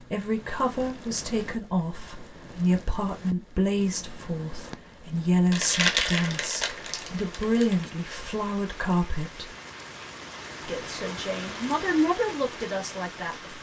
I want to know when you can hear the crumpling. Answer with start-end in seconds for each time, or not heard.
5.5-7.9.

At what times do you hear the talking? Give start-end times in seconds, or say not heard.
0.0-9.6, 10.7-13.5.